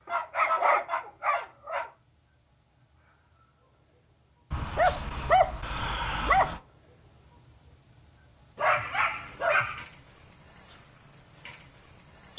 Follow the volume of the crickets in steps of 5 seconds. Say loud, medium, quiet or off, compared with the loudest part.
quiet, medium, loud.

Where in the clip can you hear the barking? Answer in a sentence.
You can hear the barking from 0.1 to 1.9 s, from 4.5 to 6.6 s and from 8.6 to 9.8 s.